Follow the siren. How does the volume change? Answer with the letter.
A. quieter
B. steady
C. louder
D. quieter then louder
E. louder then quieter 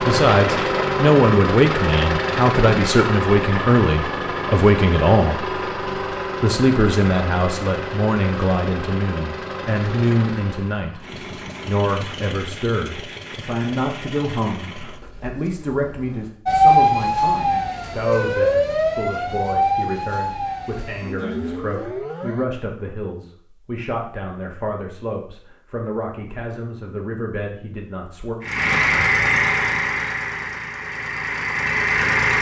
A.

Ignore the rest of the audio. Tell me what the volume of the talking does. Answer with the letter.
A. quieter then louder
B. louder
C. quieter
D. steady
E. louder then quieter
C.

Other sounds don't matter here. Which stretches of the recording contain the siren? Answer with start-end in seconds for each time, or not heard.
16.4-22.4.